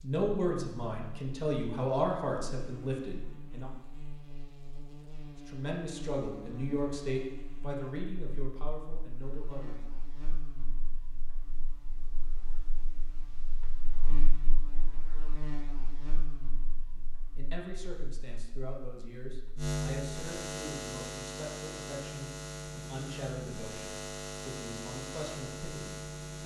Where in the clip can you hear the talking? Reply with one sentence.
The talking can be heard from 0.0 to 3.7 s, from 5.3 to 9.8 s and from 16.9 to 26.4 s.